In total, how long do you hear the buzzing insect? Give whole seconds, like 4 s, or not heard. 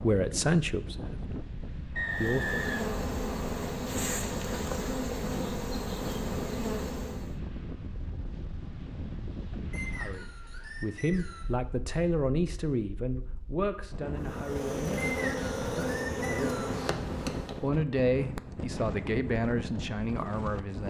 9 s.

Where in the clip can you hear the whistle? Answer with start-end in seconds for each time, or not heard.
1.9-3.6, 9.7-11.6, 14.9-16.8.